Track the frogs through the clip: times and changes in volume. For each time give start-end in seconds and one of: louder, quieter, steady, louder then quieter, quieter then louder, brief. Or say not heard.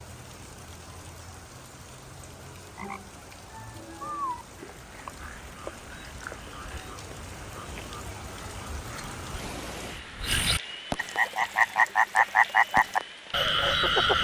2.8-14.1 quieter then louder.